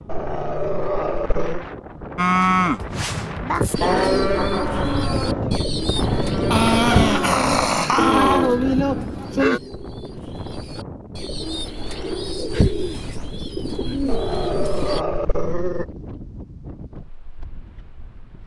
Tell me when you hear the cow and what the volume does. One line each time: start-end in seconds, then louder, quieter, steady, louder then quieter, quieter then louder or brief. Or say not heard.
2.1-9.6 quieter then louder.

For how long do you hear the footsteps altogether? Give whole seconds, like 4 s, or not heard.
not heard.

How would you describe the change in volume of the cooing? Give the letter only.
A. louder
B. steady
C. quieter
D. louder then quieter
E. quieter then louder
E.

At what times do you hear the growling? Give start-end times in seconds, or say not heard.
0.1-1.6, 6.5-8.5, 14.1-15.8.